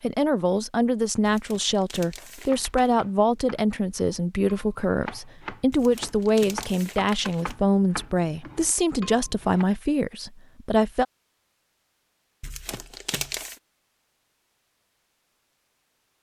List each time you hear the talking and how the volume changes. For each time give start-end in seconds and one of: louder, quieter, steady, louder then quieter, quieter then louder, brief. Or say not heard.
0.0-11.1 steady.